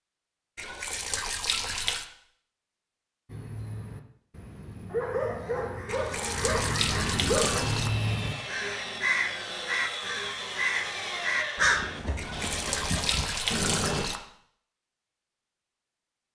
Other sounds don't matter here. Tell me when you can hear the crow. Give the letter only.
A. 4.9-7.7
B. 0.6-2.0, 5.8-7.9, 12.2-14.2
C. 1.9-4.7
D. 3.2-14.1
D.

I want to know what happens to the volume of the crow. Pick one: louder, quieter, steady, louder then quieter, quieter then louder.
louder.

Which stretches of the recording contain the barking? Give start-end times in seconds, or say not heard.
4.9-7.7.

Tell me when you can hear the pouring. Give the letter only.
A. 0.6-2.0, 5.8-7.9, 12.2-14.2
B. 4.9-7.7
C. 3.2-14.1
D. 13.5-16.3
A.